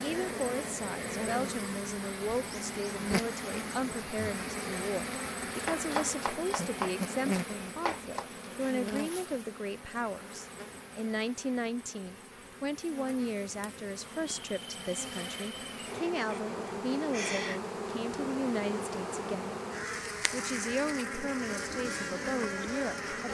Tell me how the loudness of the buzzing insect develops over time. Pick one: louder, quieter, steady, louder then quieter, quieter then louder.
quieter then louder.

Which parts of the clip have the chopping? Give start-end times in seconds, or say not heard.
5.6-8.4.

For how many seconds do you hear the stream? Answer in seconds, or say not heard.
not heard.